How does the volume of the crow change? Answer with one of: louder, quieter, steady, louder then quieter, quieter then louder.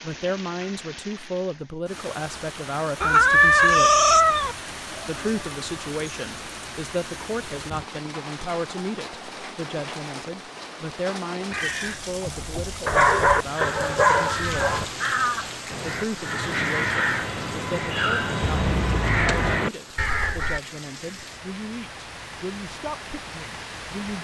louder.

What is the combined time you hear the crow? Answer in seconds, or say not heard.
9 s.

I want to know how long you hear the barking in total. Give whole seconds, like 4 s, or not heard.
2 s.